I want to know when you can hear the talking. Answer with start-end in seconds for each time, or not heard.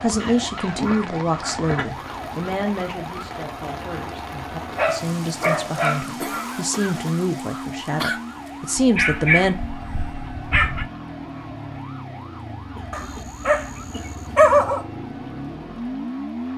0.0-9.6.